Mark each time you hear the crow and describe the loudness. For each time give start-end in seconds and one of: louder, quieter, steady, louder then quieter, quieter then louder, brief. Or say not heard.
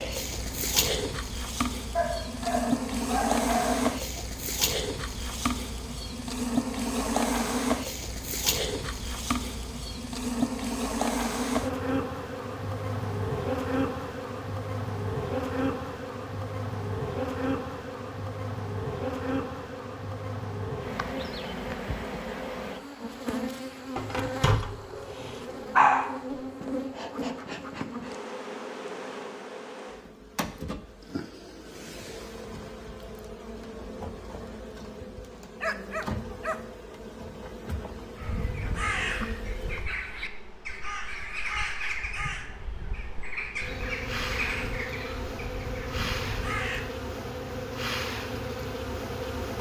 38.1-46.9 quieter.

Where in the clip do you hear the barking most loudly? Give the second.
26 s.